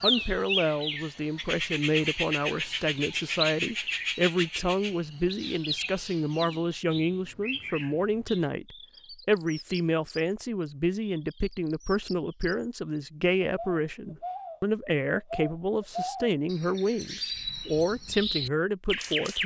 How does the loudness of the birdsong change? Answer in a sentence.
The loudness of the birdsong goes down, then up.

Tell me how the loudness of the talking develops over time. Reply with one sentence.
The loudness of the talking stays about the same.